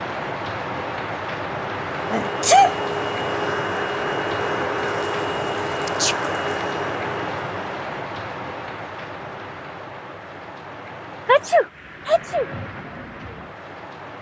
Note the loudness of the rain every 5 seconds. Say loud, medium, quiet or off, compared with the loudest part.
loud, loud, medium.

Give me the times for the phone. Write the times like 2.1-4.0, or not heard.
not heard.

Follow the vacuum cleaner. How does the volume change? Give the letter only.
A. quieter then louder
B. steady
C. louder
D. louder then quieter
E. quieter
B.